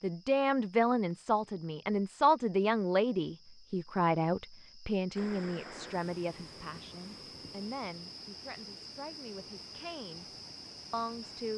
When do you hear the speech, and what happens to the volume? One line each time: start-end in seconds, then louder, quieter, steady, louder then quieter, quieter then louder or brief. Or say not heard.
0.0-10.2 quieter
10.9-11.5 brief.